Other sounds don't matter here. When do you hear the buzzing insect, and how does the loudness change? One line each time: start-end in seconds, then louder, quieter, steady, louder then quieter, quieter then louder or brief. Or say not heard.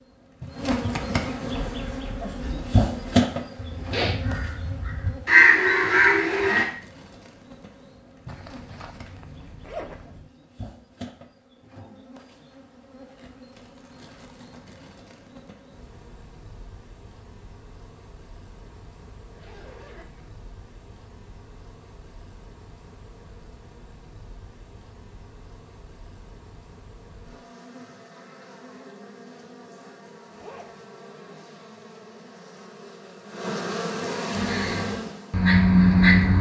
0.0-36.3 quieter then louder.